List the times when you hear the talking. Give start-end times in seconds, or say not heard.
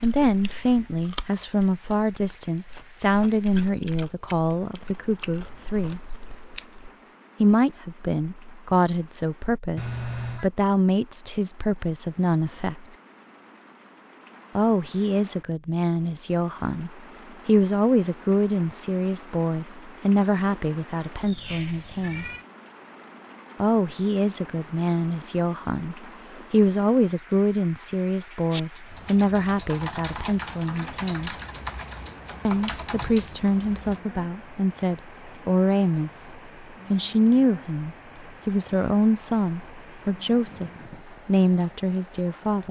0.0-6.1, 7.4-12.8, 14.6-22.3, 23.6-31.3, 32.5-42.6.